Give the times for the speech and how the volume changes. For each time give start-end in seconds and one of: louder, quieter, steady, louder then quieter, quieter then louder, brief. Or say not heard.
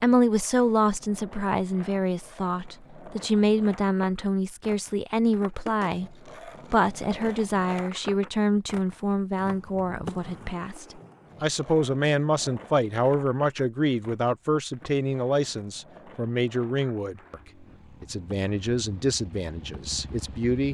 0.0-17.4 steady
18.0-20.6 brief.